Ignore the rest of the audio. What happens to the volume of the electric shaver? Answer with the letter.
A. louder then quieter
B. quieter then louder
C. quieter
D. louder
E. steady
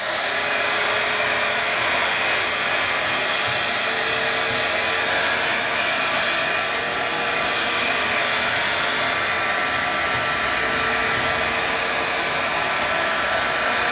E.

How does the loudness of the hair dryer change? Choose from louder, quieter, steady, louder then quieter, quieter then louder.
steady.